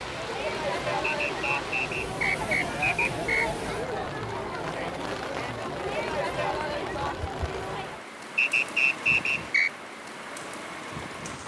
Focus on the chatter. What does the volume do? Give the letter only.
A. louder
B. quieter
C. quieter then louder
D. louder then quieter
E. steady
E.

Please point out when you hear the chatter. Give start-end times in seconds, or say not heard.
0.0-8.1.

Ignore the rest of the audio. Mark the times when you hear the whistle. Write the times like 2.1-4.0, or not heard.
1.2-3.5, 8.3-9.7.